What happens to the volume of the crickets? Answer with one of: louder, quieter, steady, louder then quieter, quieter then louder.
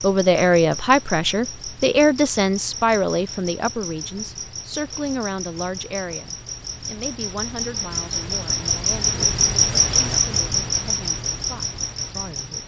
louder.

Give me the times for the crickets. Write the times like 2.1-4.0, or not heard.
0.0-12.6.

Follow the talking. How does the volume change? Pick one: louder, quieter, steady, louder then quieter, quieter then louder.
quieter.